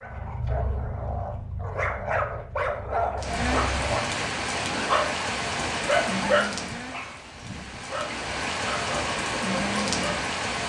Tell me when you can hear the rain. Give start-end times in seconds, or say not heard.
3.1-10.6.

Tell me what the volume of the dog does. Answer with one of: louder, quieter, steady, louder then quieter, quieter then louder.
louder then quieter.